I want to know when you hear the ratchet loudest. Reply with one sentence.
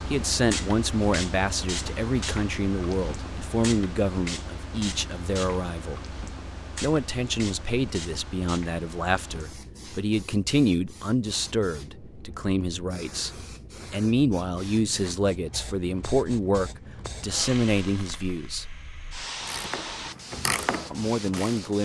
The volume of the ratchet peaks at 21 seconds.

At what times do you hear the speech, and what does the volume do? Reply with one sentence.
The speech can be heard from 0.1 to 18.6 s, at a steady volume; and briefly from 20.9 to 21.8 s.